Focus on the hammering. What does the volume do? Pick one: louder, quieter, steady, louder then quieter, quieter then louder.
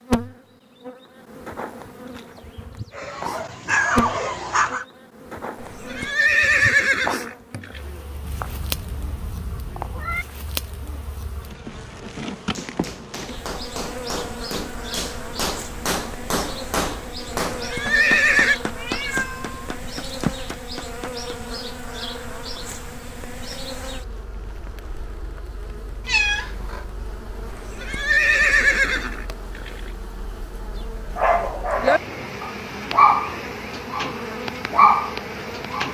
louder then quieter.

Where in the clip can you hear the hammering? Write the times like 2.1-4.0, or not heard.
12.5-21.3.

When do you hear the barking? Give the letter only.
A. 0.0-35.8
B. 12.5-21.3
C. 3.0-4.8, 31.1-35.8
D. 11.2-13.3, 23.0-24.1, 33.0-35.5
C.